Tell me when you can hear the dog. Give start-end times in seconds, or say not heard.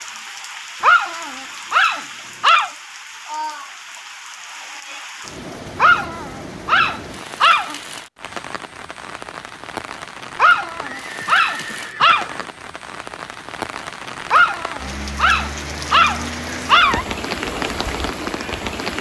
0.8-2.7, 5.8-7.8, 10.3-12.3, 14.3-17.1.